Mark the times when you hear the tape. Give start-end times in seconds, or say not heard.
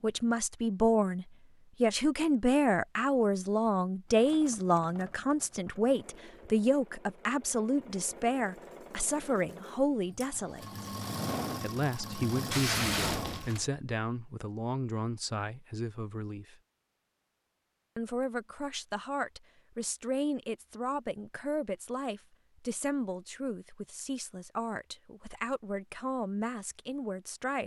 12.5-13.7.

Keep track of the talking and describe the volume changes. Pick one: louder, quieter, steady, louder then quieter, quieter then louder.
quieter.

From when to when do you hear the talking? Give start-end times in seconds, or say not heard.
0.0-10.8, 11.6-16.6, 17.9-27.6.